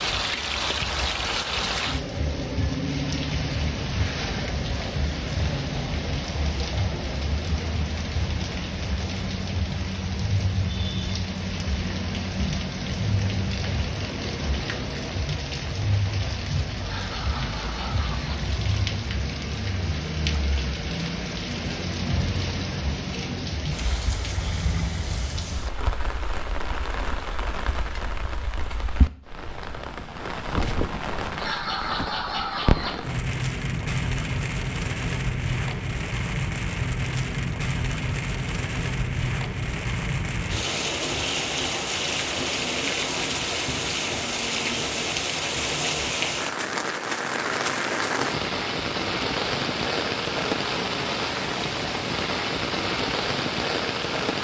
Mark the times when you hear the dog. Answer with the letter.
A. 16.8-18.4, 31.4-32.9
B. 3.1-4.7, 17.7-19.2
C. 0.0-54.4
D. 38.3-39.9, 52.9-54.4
A.